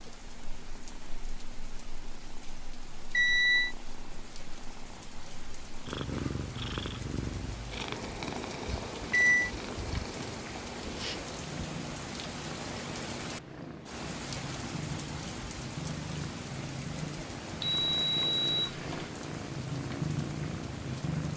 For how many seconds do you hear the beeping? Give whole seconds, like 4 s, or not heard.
3 s.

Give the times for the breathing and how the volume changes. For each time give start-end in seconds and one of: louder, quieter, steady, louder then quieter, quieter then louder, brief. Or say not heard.
not heard.